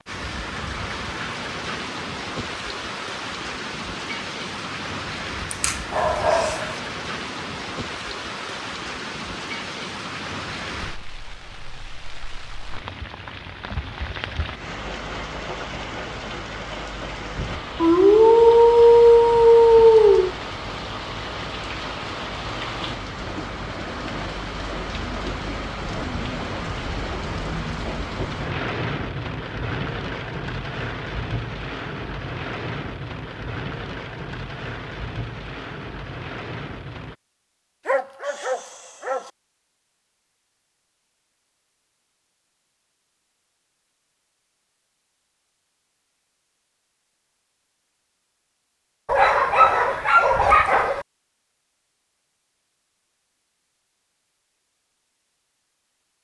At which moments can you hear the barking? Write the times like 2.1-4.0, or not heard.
5.5-6.7, 17.8-20.3, 37.9-39.3, 49.0-51.0.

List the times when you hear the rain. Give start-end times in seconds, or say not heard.
0.1-37.1.